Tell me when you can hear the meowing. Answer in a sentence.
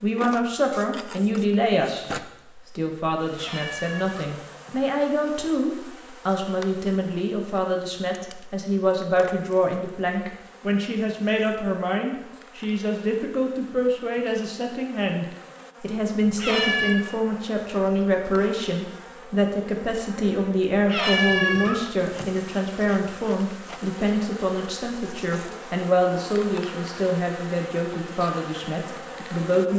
The meowing can be heard from 3.4 to 4.8 s, from 16.2 to 16.9 s and from 20.8 to 22.3 s.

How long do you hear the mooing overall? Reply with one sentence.
The mooing can't be heard in this clip.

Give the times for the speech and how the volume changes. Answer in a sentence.
The speech can be heard briefly from 0.0 to 2.0 s; and from 2.8 to 29.7 s, at a steady volume.